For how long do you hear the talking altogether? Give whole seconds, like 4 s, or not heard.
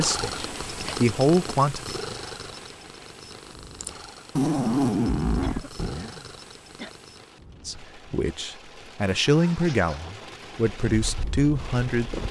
7 s.